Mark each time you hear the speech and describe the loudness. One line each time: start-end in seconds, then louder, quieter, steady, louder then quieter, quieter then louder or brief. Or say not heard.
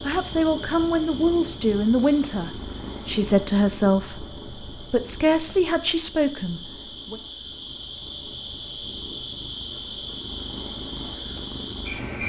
0.0-7.2 steady.